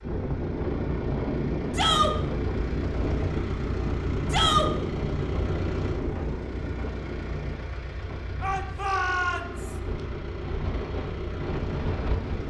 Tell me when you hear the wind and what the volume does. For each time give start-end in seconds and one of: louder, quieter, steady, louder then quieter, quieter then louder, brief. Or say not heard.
0.0-12.4 quieter then louder.